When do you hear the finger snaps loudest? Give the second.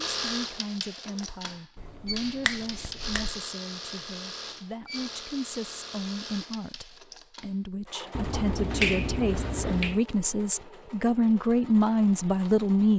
9 s.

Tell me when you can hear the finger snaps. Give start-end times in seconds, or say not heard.
1.8-3.4, 8.1-10.0.